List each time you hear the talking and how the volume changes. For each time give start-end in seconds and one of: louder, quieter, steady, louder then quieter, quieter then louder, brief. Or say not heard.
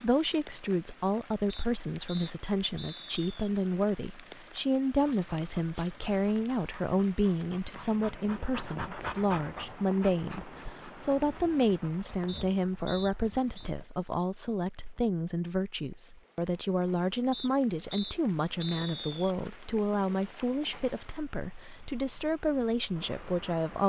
0.0-23.8 steady.